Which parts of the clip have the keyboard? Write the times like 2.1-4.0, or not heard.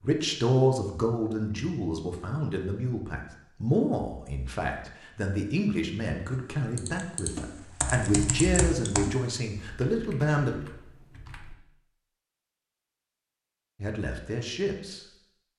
6.3-11.6.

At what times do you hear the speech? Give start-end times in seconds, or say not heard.
0.0-10.5, 13.8-15.0.